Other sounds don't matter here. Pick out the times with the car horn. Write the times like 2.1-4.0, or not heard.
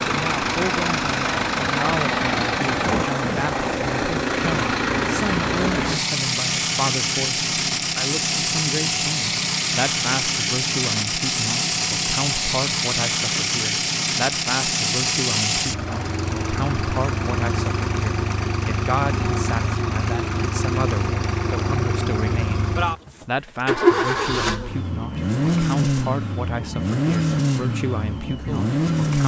not heard.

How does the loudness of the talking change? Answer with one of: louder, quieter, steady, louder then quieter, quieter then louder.
steady.